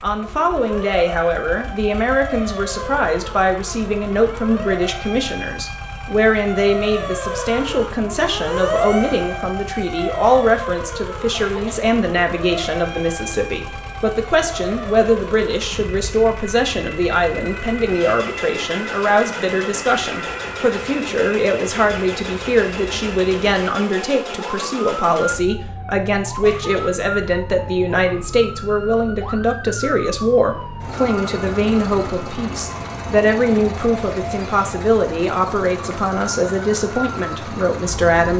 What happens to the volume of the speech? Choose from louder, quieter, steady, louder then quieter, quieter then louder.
steady.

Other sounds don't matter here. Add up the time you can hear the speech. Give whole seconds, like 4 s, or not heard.
38 s.